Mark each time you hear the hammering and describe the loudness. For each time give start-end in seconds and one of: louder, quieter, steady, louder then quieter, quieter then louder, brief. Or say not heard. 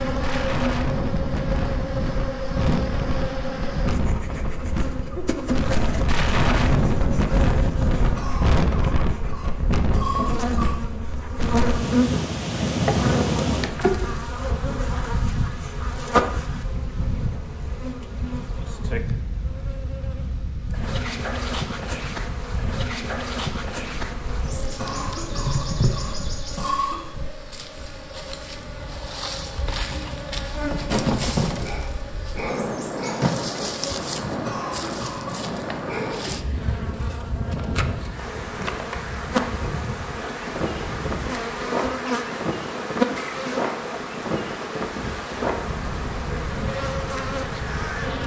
not heard.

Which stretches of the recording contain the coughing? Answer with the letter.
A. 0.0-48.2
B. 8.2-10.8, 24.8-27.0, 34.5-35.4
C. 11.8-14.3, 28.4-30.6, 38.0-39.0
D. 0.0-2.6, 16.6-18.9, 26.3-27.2
B.